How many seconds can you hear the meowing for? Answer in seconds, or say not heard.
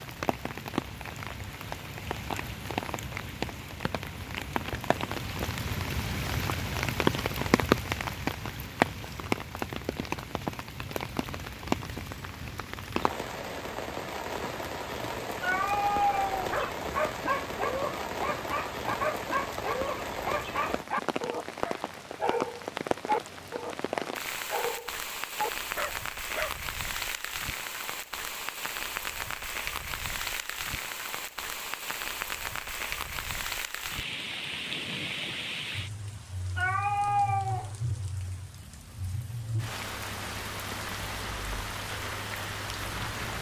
2 s.